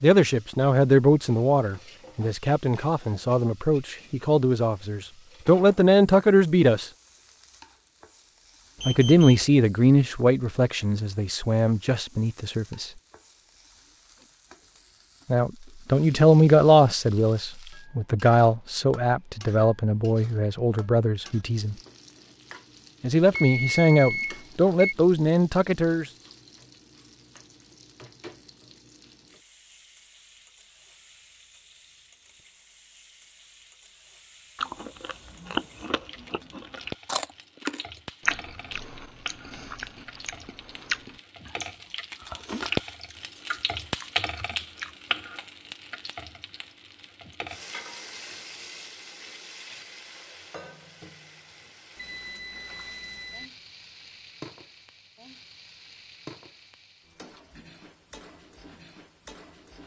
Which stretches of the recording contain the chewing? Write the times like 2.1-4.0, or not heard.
34.5-45.0.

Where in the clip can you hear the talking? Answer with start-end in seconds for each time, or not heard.
0.0-6.9, 8.8-12.9, 15.3-21.8, 23.0-26.1.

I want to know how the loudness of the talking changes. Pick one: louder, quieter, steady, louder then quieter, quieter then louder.
steady.